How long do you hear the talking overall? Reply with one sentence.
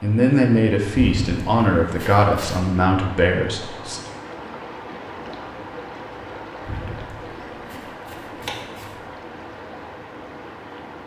You can hear the talking for 4 seconds altogether.